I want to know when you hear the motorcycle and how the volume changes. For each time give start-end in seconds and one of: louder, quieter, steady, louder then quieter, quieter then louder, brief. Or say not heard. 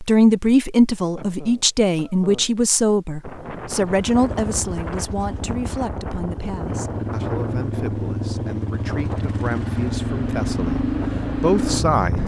3.7-12.2 louder.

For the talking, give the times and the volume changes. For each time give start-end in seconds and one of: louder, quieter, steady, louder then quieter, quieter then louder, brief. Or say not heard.
0.0-12.2 quieter then louder.